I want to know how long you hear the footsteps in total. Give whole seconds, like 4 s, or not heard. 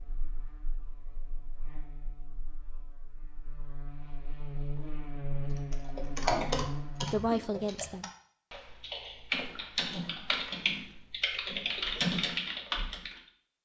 not heard.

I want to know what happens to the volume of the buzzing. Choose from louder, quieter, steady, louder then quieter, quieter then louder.
louder.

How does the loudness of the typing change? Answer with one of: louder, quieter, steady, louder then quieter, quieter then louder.
quieter then louder.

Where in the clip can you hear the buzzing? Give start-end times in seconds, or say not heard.
0.0-7.2.